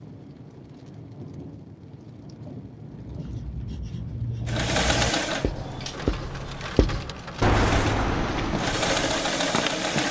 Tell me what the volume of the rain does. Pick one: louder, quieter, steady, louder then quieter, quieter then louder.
louder.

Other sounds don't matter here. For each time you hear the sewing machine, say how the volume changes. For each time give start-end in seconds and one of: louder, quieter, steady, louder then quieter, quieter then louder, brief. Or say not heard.
4.5-10.0 quieter then louder.